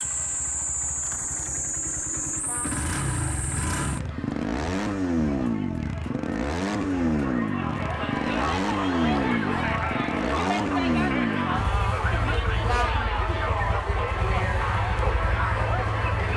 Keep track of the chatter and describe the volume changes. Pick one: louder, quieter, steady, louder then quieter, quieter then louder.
louder.